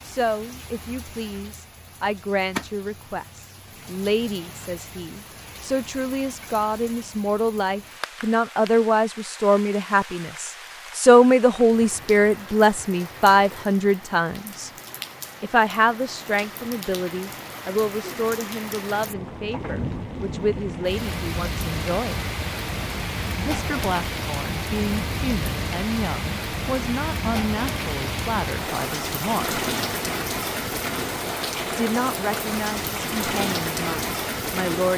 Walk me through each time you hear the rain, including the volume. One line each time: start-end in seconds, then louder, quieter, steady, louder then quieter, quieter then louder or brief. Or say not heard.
0.0-34.9 louder.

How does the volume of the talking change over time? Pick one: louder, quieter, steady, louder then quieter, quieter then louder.
louder then quieter.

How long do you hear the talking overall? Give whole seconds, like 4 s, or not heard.
31 s.